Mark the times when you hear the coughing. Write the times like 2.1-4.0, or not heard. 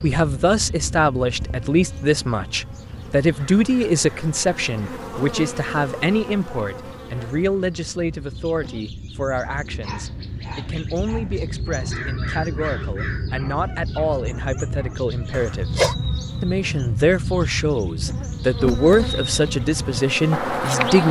15.3-15.9.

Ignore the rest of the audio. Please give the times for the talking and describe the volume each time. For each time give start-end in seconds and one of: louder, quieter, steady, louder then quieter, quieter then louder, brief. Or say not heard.
0.0-21.0 quieter then louder.